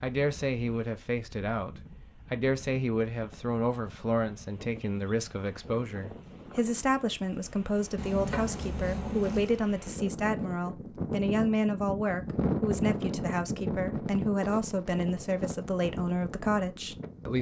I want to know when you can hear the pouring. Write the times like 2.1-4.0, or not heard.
8.0-9.6.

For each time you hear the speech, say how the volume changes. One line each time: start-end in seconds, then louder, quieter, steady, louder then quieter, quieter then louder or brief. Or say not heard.
0.0-17.3 steady.